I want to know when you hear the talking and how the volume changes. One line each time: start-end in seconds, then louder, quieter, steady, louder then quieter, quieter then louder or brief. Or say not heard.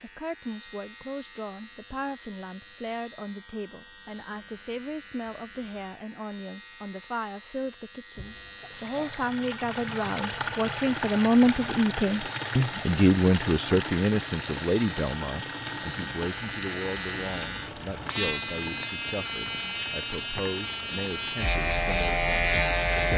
0.0-23.1 louder then quieter.